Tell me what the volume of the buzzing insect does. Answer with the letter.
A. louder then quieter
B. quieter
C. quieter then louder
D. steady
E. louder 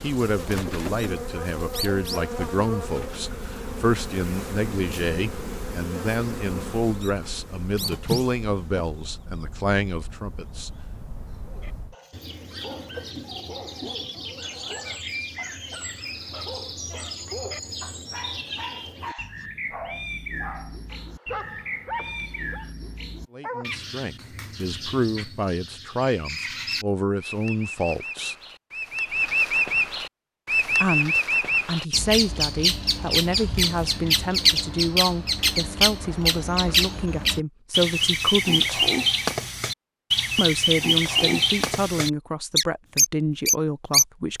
D.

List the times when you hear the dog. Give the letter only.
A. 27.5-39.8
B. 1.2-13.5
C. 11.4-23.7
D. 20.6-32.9
C.